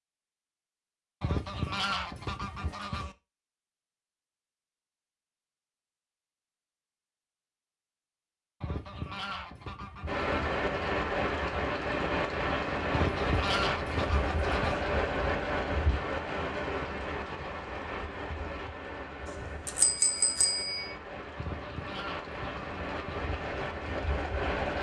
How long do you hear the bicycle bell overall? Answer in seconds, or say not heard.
2 s.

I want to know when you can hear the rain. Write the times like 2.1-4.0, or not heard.
10.1-24.7.